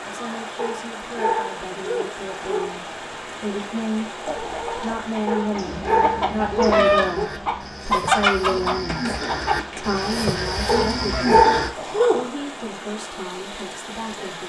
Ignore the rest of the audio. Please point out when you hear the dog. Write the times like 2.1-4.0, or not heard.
0.6-2.8, 5.2-7.3, 10.7-12.2.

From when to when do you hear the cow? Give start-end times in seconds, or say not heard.
6.6-11.7.